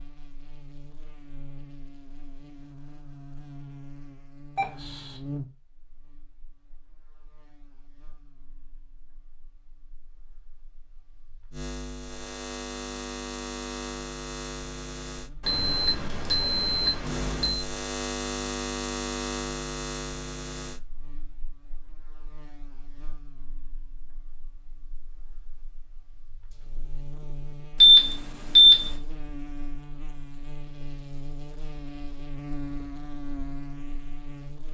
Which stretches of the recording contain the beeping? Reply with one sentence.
You can hear the beeping from 4.5 to 5.2 s, from 15.4 to 17.6 s and from 27.8 to 28.9 s.